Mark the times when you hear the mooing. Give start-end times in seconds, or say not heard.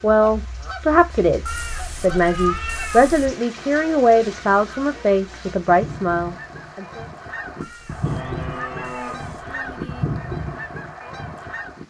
8.0-10.1.